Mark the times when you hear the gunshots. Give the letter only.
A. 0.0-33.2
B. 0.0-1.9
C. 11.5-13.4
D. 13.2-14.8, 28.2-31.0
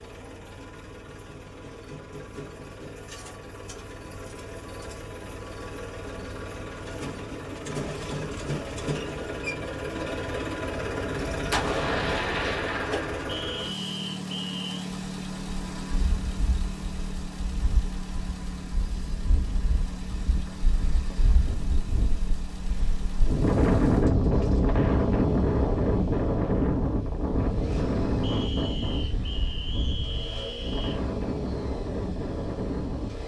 C.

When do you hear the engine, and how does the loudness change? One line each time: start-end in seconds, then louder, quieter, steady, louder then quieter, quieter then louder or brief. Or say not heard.
0.0-33.2 louder then quieter.